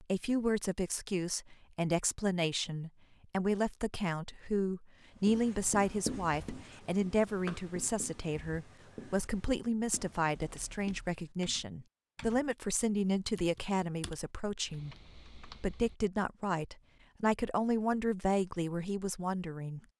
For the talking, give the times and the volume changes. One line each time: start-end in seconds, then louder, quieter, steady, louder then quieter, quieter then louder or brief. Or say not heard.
0.0-19.8 steady.